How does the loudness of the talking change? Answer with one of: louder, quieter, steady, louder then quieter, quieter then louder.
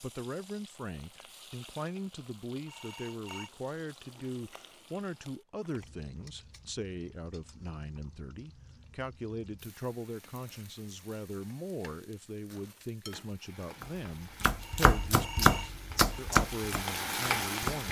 steady.